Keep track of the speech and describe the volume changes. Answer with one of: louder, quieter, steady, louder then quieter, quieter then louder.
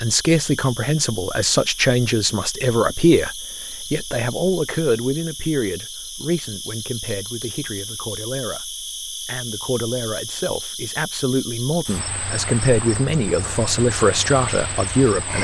quieter then louder.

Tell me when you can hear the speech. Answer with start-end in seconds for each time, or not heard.
0.0-15.4.